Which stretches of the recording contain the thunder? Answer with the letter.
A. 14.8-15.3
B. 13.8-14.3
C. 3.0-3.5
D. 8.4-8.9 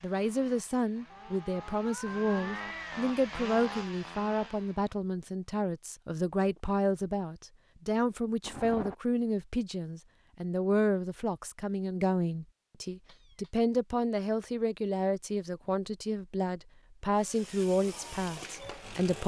D.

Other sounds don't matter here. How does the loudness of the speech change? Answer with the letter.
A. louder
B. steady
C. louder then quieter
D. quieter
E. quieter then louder
B.